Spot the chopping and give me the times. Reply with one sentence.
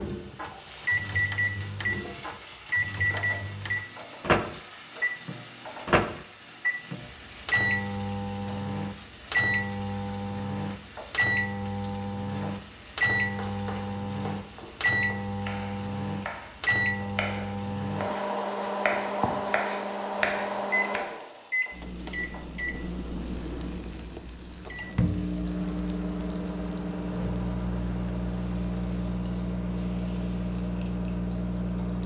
The chopping can be heard from 13.2 to 21.0 s.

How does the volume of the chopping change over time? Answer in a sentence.
The volume of the chopping goes up.